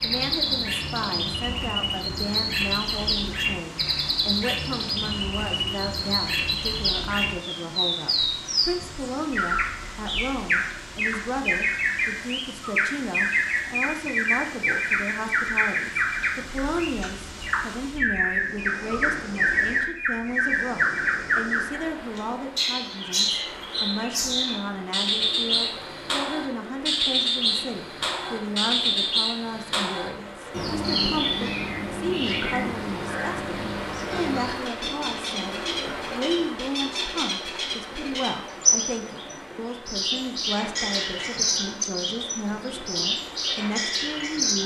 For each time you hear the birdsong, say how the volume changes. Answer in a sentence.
You can hear the birdsong from 0.0 to 44.6 s, at a steady volume.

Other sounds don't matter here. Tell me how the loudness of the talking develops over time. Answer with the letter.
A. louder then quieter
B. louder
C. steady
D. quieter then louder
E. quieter
C.